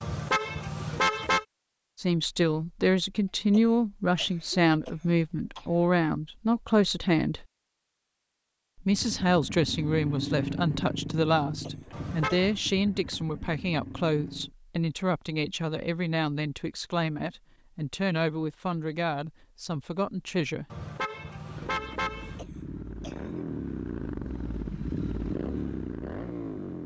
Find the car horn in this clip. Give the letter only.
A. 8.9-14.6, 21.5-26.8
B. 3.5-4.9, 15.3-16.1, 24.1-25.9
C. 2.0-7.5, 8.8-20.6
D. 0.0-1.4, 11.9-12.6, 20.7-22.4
D.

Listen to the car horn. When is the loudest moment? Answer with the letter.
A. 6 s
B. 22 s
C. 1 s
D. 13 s
C.